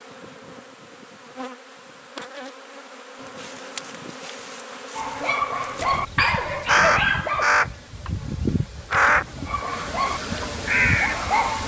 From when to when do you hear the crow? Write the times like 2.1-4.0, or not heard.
6.7-8.1, 8.9-11.3.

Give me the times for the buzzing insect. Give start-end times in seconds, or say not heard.
0.0-11.6.